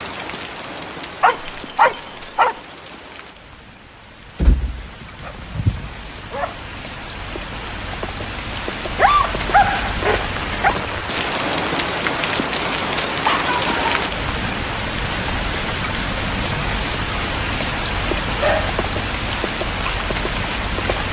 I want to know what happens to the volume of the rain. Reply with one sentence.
The volume of the rain goes up.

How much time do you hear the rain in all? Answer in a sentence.
The rain can be heard for 21 seconds in total.